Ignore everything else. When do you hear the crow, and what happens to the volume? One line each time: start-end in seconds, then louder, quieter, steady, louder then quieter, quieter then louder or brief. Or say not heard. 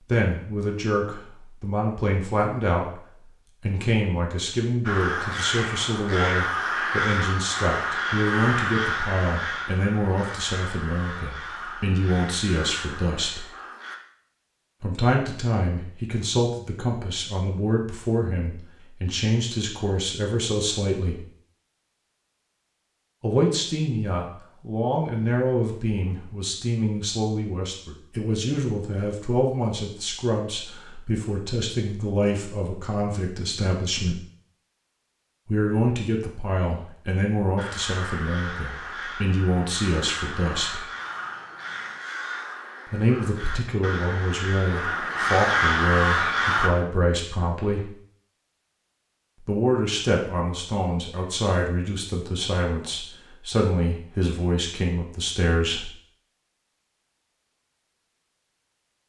4.8-14.0 quieter
37.5-46.7 louder.